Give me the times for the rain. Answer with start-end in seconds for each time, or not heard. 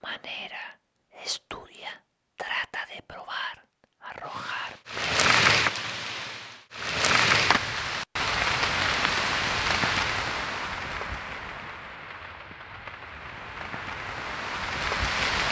4.3-15.4.